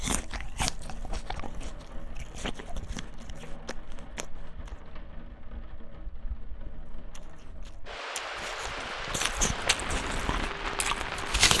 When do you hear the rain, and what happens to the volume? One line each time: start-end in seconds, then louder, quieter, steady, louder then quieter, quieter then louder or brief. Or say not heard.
0.1-11.5 louder.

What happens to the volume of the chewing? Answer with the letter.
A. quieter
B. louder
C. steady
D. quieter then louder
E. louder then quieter
D.